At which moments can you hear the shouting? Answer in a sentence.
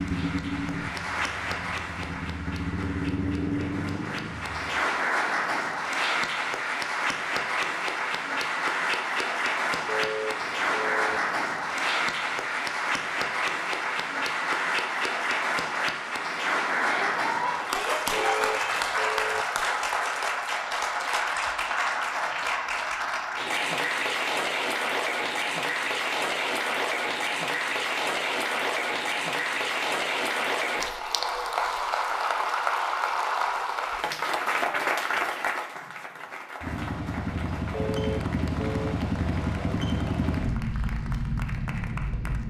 You can hear the shouting from 16.8 to 18.8 s.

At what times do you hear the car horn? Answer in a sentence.
The car horn can be heard from 9.8 to 11.2 s, from 18.1 to 19.4 s and from 37.7 to 39.0 s.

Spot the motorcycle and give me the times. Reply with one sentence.
The motorcycle can be heard from 0.0 to 4.8 s and from 36.6 to 42.4 s.